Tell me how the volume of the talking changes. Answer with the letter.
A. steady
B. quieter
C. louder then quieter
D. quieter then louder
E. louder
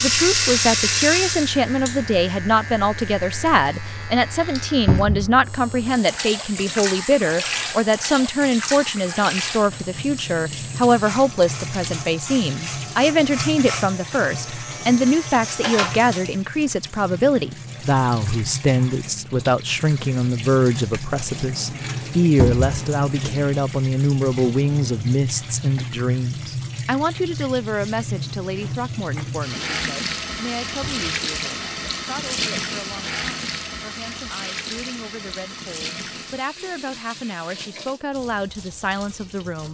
B.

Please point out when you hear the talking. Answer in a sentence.
The talking can be heard from 0.0 to 39.6 s.